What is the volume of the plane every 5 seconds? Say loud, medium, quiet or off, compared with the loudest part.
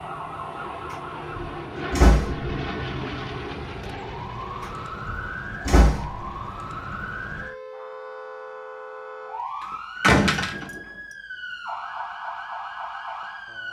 loud, medium, off.